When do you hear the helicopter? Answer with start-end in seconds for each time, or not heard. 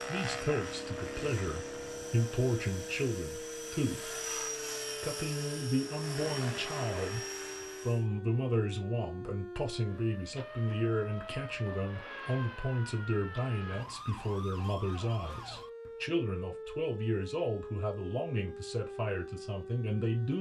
0.0-8.1.